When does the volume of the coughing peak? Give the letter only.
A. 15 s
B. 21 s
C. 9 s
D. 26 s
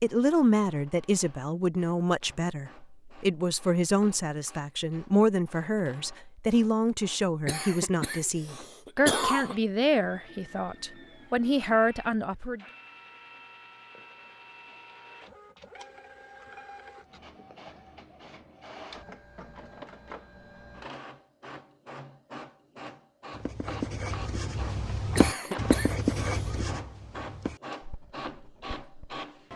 C.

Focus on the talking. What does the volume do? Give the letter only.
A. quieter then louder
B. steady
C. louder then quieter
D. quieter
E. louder
B.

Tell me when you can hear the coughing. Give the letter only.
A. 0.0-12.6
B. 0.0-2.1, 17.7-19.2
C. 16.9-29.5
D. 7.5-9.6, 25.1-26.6
D.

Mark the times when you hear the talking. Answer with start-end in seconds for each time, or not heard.
0.0-12.6.